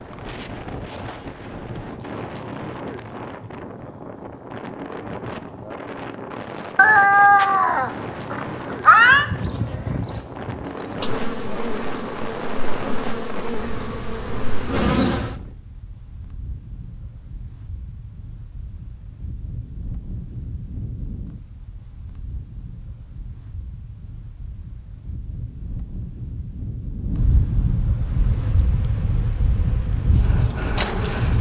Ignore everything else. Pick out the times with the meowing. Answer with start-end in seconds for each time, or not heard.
6.8-9.2.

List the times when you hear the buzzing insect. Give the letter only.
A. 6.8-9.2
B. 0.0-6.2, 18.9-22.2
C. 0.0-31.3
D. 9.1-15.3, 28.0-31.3
D.